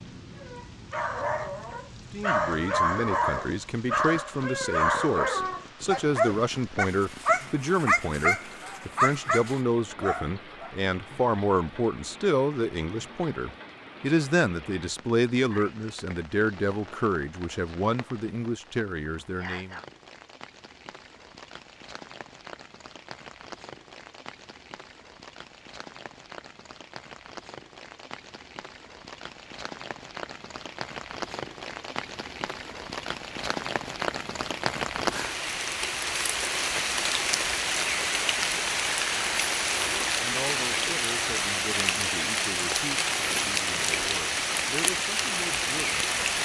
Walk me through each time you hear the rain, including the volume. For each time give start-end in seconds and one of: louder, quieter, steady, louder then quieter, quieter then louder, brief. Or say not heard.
0.0-46.4 louder.